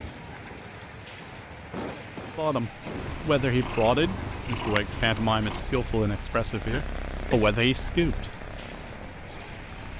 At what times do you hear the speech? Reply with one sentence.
You can hear the speech from 2.4 to 8.3 s.